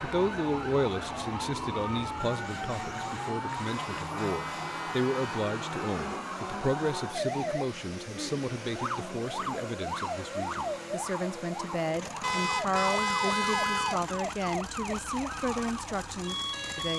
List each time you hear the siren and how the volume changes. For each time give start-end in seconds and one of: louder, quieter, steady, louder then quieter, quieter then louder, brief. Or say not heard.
0.0-16.9 steady.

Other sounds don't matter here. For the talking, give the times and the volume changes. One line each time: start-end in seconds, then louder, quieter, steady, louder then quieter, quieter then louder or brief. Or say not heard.
0.0-16.9 steady.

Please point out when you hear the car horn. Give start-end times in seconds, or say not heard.
3.6-5.5, 12.2-14.0.